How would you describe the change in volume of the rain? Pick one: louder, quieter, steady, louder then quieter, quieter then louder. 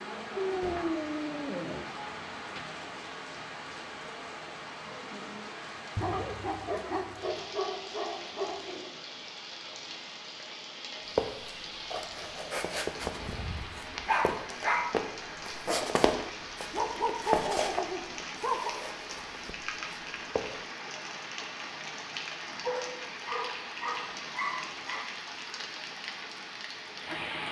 steady.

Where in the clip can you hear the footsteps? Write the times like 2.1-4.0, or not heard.
11.2-20.5.